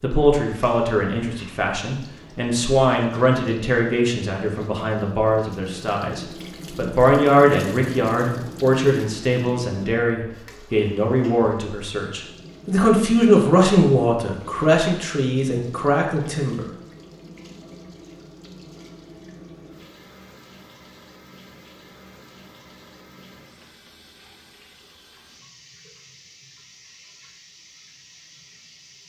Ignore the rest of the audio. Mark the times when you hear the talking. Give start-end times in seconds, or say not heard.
0.0-16.6.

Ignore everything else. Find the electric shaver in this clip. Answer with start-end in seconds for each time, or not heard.
not heard.